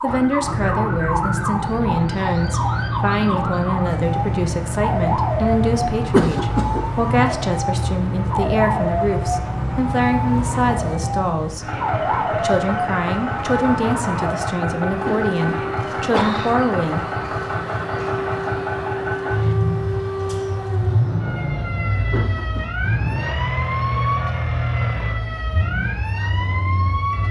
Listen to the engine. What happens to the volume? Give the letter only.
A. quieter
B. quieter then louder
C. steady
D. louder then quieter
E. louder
C.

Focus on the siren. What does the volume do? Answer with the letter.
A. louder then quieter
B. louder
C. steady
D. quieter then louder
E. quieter
C.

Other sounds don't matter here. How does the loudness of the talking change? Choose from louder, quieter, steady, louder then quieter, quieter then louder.
steady.